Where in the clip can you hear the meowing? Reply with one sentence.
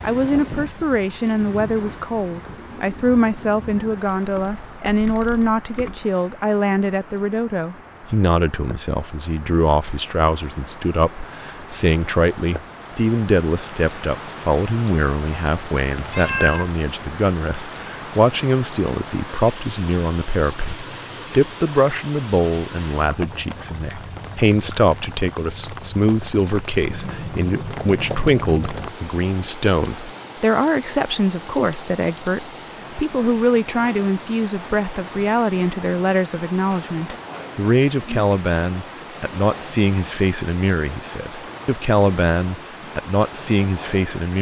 The meowing can be heard from 15.9 to 16.8 s.